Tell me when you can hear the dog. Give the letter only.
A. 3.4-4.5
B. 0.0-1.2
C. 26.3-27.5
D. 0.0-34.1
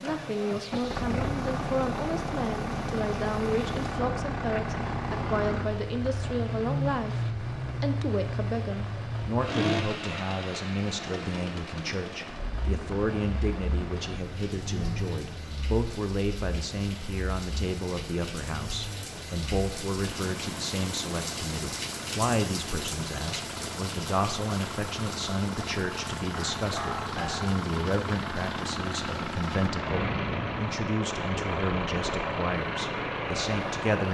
C.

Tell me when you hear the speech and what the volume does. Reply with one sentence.
You can hear the speech from 0.0 to 34.1 s, at a steady volume.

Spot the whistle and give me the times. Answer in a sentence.
You can't hear the whistle here.